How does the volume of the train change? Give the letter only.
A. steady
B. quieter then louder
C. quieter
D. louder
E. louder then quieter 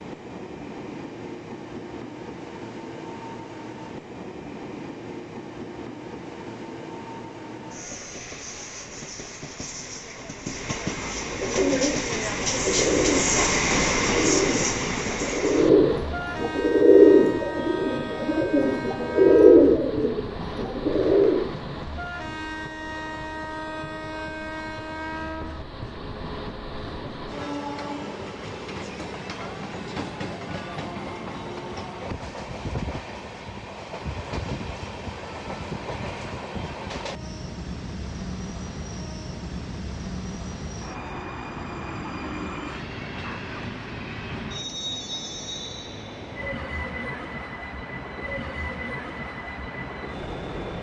E.